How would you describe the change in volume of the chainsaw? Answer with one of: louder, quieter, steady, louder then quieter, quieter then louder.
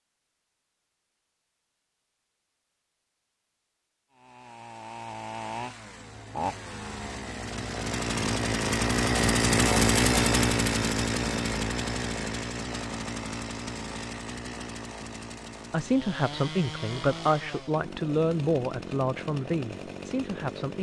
louder then quieter.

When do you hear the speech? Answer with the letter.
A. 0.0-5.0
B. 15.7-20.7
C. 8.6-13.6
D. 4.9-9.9
B.